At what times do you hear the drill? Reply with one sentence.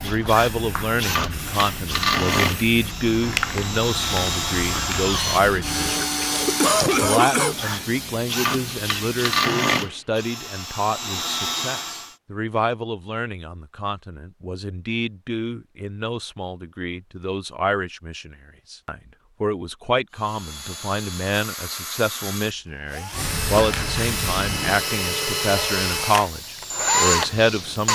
You can hear the drill from 0.0 to 12.2 s and from 20.1 to 27.9 s.